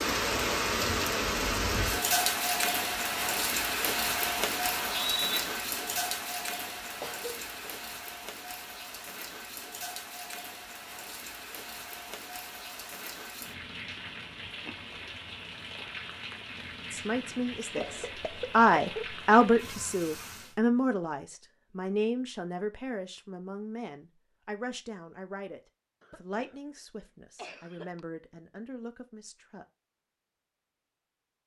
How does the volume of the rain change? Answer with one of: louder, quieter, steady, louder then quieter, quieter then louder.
quieter.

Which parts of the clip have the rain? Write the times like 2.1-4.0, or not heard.
0.0-20.6.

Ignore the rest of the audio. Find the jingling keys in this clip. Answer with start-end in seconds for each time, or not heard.
not heard.